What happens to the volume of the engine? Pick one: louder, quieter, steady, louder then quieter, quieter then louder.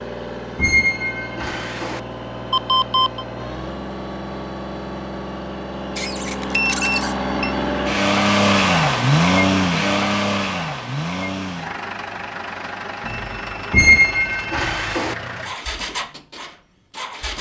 louder then quieter.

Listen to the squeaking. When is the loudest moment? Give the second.
14 s.